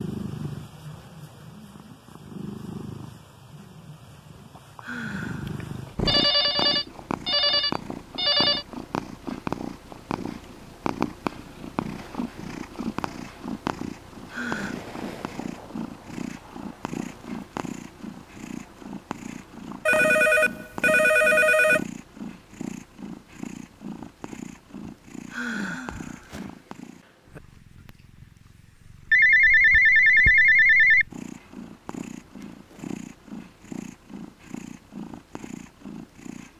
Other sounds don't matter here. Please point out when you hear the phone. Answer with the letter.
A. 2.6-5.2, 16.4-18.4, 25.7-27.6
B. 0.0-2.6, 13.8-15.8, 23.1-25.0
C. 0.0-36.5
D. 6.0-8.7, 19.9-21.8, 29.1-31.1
D.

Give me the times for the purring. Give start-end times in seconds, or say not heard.
0.0-36.5.